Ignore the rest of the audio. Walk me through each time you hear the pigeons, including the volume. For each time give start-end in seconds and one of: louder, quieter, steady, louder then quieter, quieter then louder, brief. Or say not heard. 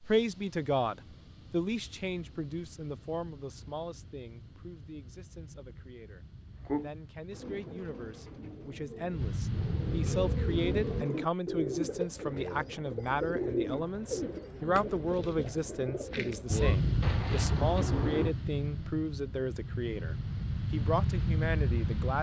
6.5-18.4 louder.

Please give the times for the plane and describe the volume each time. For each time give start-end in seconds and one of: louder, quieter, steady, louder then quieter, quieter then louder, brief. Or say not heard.
0.0-11.1 louder
16.5-22.1 quieter then louder.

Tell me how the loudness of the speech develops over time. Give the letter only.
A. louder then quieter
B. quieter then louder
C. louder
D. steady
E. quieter
B.